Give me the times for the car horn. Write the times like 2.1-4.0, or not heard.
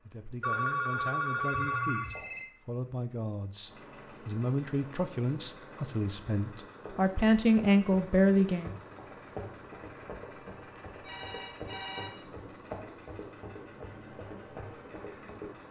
not heard.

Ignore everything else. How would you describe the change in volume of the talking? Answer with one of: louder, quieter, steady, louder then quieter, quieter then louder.
louder.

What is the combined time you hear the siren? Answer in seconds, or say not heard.
not heard.